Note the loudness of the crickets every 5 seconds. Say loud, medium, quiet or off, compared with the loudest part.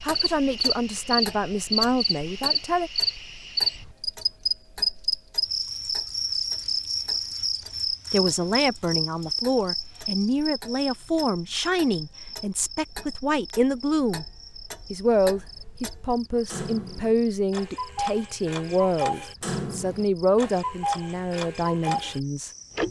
loud, loud, quiet, quiet, quiet.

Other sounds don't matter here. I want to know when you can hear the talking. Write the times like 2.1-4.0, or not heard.
0.0-2.9, 8.1-14.2, 14.9-22.5.